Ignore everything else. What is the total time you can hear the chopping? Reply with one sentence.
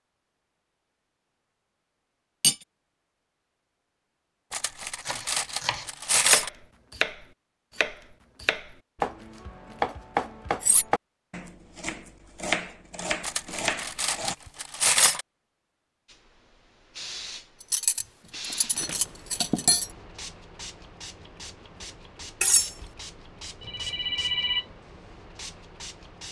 The chopping can be heard for 9 seconds in total.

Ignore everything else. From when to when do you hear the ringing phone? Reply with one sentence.
You can hear the ringing phone from 23.6 to 24.7 s.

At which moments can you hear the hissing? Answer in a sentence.
The hissing can be heard from 16.1 to 26.2 s.